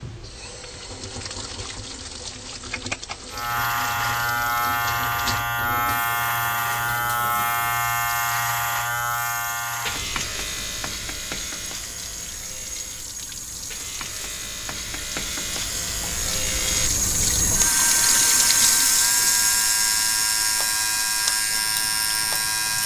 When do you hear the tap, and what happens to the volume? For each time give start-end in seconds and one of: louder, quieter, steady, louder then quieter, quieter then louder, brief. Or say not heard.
0.0-22.8 louder.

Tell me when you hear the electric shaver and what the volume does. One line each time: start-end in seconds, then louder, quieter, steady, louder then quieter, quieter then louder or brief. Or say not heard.
3.3-22.8 quieter then louder.